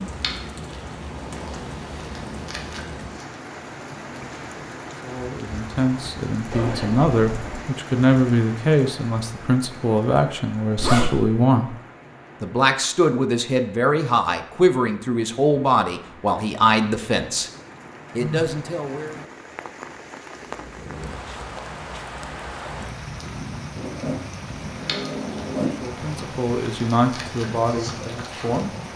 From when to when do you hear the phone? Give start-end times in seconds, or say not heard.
18.1-18.6.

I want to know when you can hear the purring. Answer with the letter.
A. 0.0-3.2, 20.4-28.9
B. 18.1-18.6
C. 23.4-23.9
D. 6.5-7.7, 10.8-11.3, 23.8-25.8
A.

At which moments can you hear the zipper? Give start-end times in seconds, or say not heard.
6.5-7.7, 10.8-11.3, 23.8-25.8.